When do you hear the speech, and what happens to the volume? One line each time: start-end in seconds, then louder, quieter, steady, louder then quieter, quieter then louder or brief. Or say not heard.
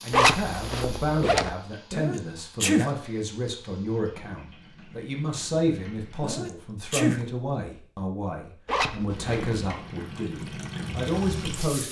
0.0-11.8 steady.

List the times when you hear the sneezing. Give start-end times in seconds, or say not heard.
1.9-2.9, 6.2-7.2.